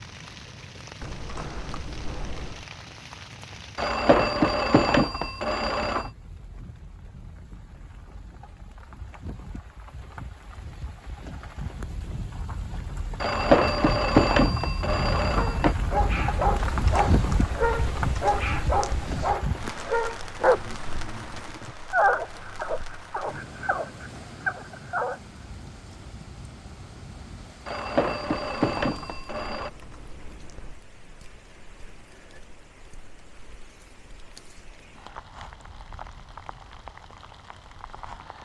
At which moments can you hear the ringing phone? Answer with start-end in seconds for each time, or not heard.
3.8-6.1, 13.2-15.8, 27.6-29.7.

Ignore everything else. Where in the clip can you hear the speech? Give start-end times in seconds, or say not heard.
not heard.